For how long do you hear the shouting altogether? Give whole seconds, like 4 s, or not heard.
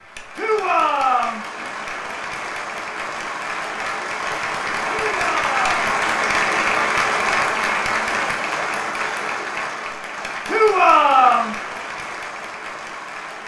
3 s.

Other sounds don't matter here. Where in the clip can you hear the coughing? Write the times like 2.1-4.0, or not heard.
not heard.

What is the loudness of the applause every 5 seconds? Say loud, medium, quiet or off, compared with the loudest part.
medium, loud, medium.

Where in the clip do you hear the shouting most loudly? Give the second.
11 s.